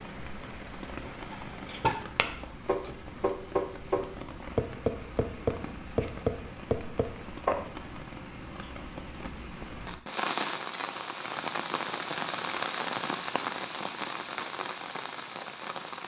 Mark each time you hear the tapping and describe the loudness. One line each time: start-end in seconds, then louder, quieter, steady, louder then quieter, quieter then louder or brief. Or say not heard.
1.3-7.7 steady.